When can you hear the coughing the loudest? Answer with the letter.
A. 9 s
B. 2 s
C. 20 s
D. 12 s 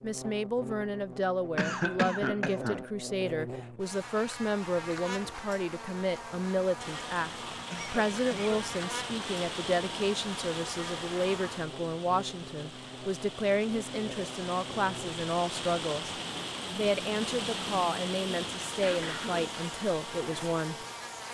B.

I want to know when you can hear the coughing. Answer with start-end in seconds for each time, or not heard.
1.6-2.9, 7.7-8.7, 18.8-19.6.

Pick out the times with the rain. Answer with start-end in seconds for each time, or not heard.
6.8-21.2.